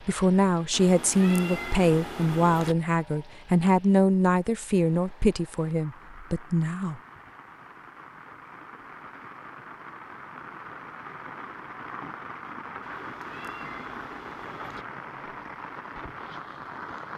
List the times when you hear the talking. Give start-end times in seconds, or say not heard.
0.1-7.0.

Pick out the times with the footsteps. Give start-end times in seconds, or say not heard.
not heard.